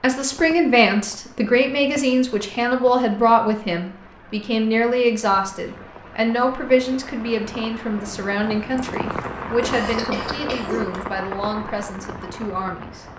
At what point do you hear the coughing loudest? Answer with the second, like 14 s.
11 s.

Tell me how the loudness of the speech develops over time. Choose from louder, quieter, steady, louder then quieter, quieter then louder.
quieter.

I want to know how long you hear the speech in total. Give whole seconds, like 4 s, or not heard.
13 s.